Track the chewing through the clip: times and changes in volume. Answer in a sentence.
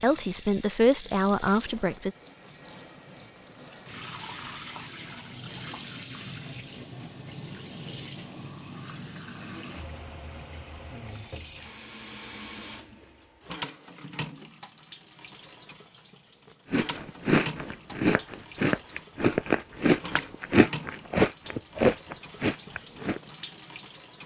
The chewing can be heard from 16.7 to 23.2 s, at a steady volume.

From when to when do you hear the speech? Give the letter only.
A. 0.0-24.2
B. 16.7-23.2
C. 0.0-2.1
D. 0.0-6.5
C.